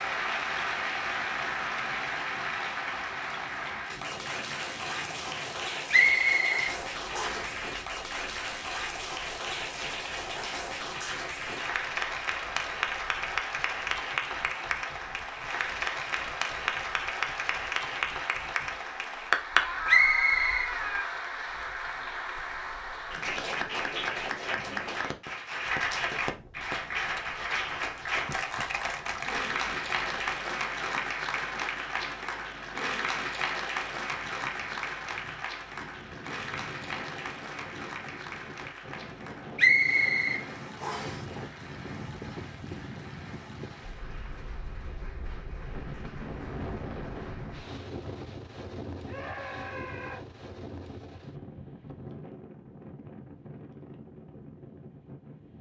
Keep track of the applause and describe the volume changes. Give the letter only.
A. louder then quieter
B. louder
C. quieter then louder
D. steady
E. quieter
E.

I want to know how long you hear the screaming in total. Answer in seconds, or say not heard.
3 s.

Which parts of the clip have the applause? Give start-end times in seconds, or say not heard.
0.0-47.6.